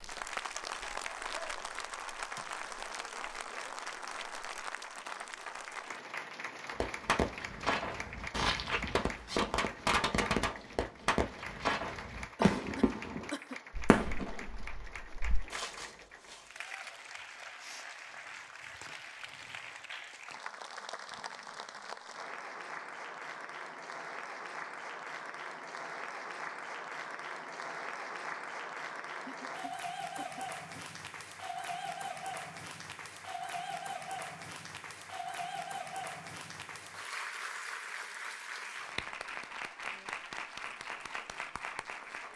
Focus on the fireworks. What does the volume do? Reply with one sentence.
The volume of the fireworks goes down.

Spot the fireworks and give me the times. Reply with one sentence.
The fireworks can be heard from 6.8 to 16.4 s.